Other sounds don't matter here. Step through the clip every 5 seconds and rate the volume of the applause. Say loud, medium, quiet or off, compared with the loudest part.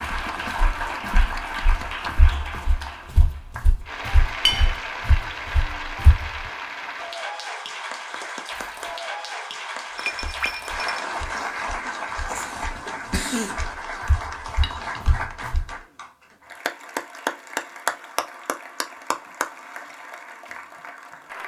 loud, loud, loud, loud, medium.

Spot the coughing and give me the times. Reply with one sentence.
The coughing can be heard from 12.2 to 13.7 s.